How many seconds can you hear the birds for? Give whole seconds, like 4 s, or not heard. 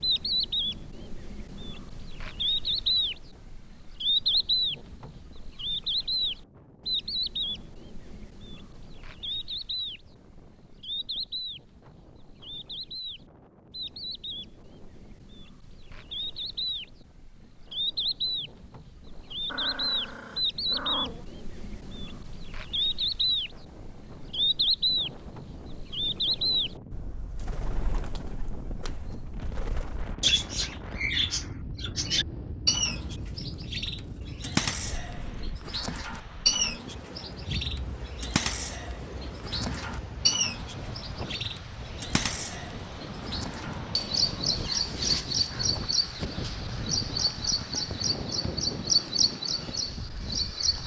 51 s.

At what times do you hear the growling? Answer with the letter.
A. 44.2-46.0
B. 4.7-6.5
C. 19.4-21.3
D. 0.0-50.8
C.